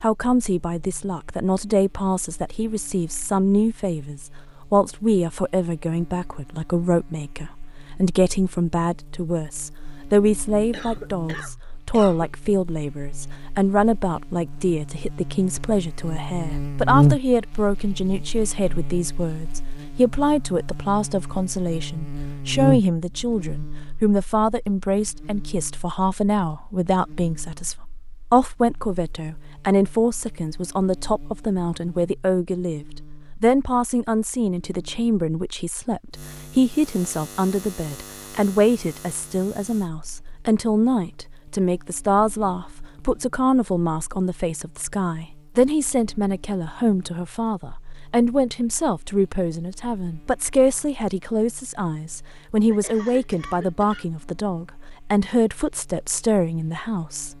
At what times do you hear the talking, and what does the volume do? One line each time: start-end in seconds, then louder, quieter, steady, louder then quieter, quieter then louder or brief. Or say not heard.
0.0-57.3 steady.